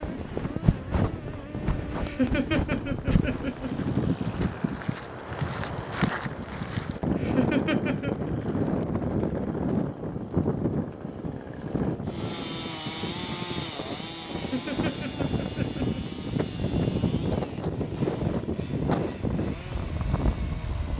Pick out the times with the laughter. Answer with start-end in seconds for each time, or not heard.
1.9-3.7, 7.1-8.2, 14.3-16.2.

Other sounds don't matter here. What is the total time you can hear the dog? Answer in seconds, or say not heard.
not heard.